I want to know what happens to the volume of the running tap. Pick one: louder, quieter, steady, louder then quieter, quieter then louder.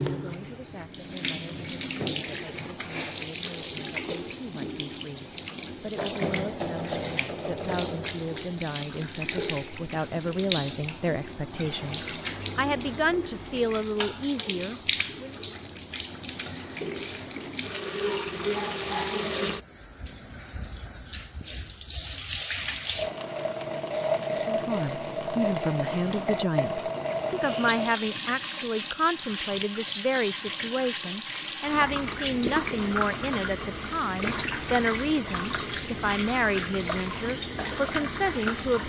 steady.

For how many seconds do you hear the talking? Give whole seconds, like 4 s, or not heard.
30 s.